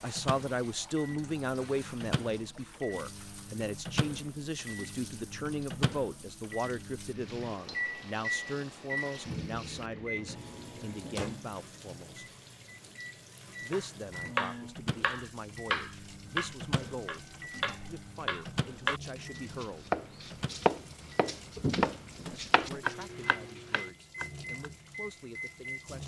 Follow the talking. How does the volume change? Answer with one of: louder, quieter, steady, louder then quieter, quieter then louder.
quieter.